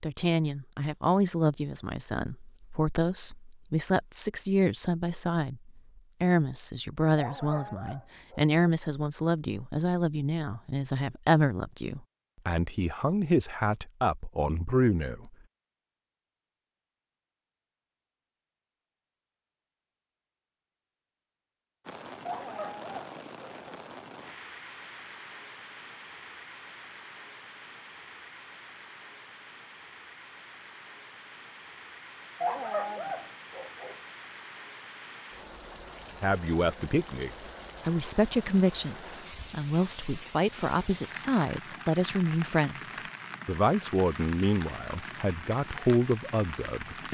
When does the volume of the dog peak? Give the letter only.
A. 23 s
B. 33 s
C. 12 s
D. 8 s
B.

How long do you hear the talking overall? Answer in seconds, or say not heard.
26 s.